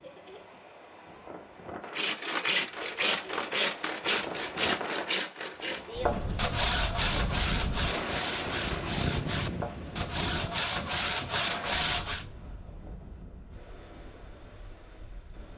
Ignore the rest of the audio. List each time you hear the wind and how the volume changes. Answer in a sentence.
You can hear the wind from 0.0 to 15.5 s, getting louder then quieter.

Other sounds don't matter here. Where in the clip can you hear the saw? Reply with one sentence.
The saw can be heard from 1.9 to 12.2 s.